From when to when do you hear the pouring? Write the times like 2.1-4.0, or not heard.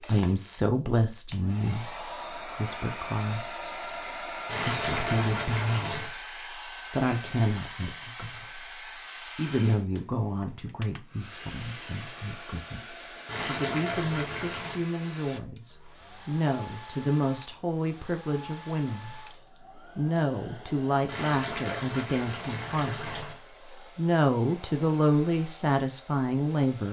4.5-6.2, 13.2-14.8, 21.1-23.4.